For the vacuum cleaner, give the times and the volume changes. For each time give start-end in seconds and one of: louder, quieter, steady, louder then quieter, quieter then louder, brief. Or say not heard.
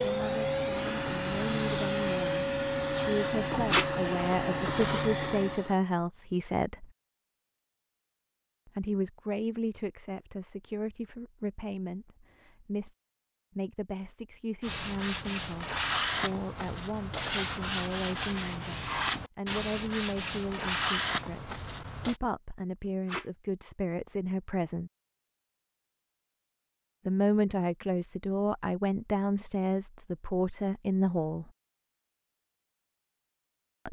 0.0-5.8 steady.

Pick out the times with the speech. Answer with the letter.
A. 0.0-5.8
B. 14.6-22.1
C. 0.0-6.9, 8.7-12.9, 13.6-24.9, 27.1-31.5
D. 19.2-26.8
C.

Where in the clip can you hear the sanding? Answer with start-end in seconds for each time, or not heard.
14.6-22.1.